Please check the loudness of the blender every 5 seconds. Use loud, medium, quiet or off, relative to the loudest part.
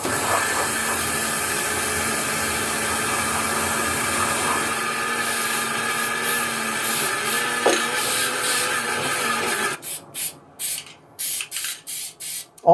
loud, loud, off.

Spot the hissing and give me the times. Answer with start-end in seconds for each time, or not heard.
0.0-12.6.